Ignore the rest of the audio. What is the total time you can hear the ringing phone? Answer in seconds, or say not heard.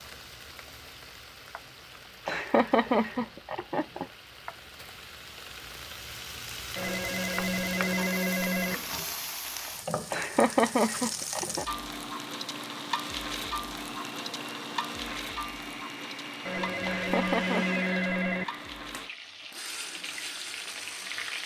4 s.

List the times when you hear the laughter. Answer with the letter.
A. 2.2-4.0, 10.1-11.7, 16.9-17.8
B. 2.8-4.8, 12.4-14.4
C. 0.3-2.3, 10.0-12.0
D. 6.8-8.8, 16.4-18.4
A.